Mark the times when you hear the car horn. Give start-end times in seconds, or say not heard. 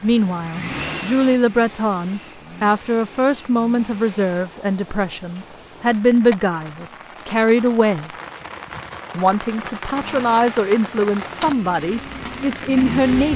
not heard.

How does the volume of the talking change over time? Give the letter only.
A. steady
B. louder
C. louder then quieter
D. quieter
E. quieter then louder
A.